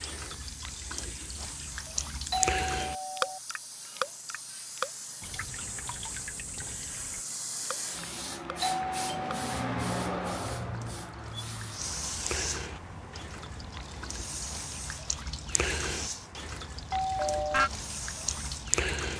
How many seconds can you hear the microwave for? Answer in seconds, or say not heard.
not heard.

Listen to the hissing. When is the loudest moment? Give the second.
10 s.